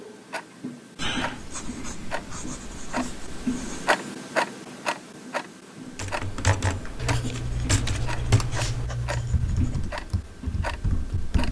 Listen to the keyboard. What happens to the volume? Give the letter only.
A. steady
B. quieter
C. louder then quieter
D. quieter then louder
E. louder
B.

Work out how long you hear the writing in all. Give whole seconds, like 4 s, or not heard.
6 s.